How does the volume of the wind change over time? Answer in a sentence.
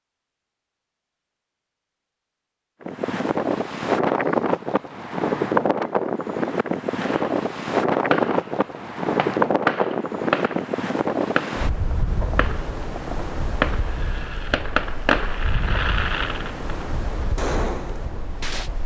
The volume of the wind goes down.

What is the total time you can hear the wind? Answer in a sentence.
The wind can be heard for 16 seconds in total.